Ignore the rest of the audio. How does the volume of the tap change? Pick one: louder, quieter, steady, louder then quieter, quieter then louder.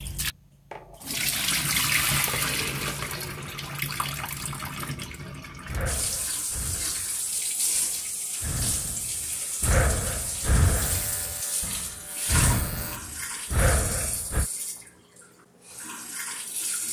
quieter.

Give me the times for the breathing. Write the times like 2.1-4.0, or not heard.
5.7-14.4.